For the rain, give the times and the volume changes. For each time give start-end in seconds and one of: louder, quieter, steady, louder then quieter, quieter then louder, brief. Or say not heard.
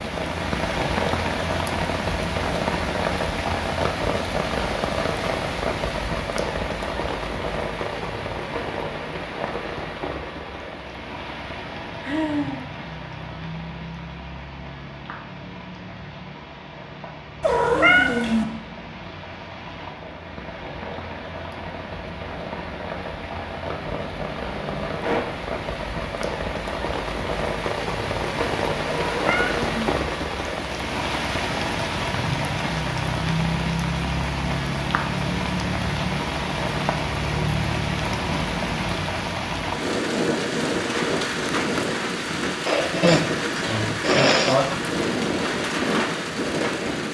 0.0-47.0 quieter then louder.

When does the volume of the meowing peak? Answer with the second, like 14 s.
18 s.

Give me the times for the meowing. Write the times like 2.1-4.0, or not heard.
17.4-18.4, 28.9-29.9.